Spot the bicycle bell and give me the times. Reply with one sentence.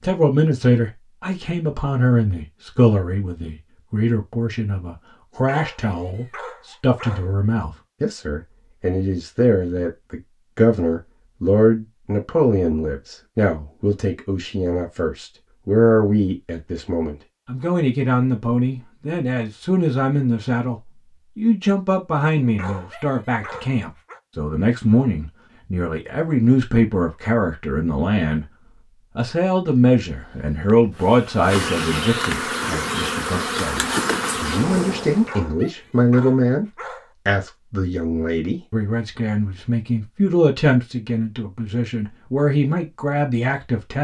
You can't hear the bicycle bell here.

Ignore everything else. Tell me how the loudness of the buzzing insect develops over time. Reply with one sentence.
The loudness of the buzzing insect goes up.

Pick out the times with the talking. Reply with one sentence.
You can hear the talking from 0.0 to 28.4 s, from 29.1 to 36.6 s and from 37.2 to 43.9 s.